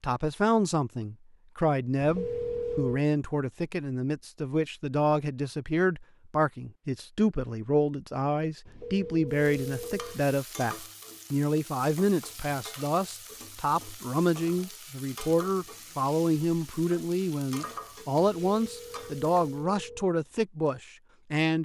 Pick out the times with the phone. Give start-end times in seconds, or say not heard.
2.0-3.0, 8.7-10.2, 18.4-20.1.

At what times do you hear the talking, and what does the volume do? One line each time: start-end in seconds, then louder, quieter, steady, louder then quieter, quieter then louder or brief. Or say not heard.
0.0-21.6 steady.